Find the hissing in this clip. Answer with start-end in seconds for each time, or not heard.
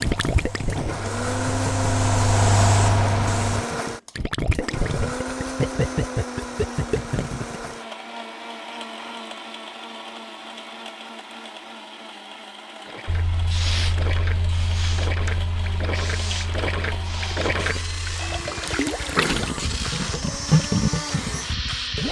0.0-3.6, 13.1-22.0.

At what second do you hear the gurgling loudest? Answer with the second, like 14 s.
21 s.